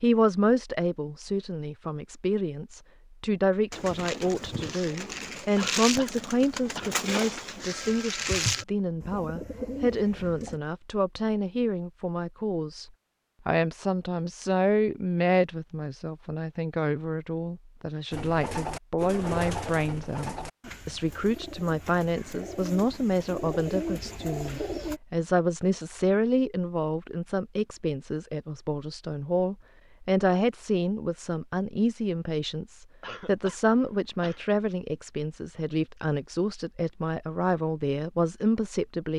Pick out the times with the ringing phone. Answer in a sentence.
The ringing phone can be heard from 7.7 to 8.7 s.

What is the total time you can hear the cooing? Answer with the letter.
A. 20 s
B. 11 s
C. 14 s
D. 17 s
C.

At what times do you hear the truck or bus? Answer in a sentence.
You can't hear the truck or bus here.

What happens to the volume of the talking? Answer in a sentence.
The volume of the talking stays about the same.